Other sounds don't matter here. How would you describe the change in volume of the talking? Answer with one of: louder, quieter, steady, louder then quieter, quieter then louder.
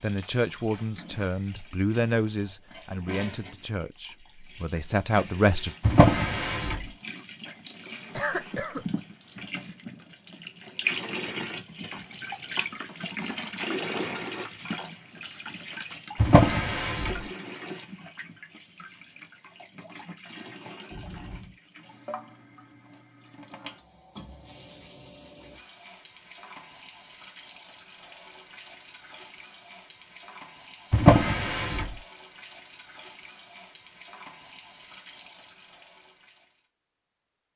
quieter then louder.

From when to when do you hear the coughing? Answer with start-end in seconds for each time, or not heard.
8.2-8.8, 20.9-21.6.